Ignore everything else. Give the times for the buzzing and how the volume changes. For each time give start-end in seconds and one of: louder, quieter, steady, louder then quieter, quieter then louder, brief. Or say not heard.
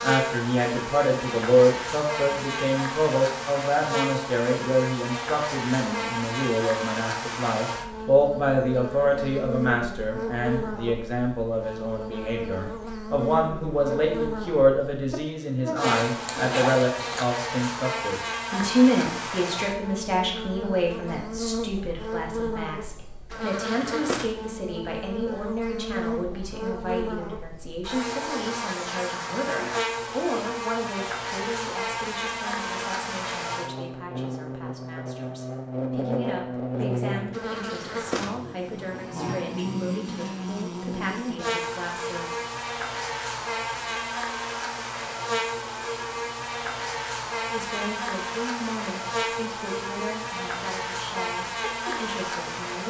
0.0-52.8 steady.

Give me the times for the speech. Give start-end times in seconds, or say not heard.
0.0-42.2, 47.5-52.8.